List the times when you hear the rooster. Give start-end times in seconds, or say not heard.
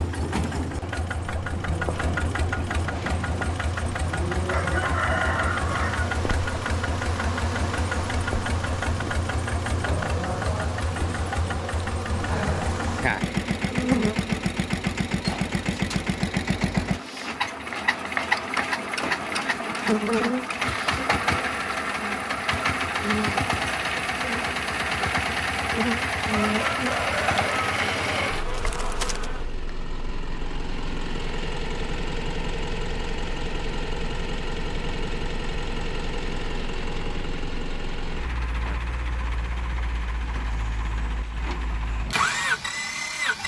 4.5-6.2, 26.4-28.3.